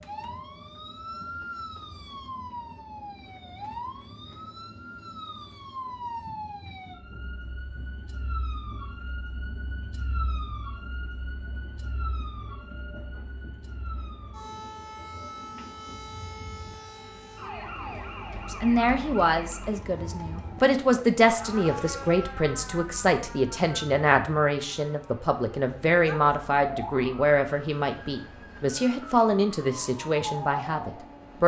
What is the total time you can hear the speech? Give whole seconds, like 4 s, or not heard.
13 s.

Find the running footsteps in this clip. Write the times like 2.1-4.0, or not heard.
not heard.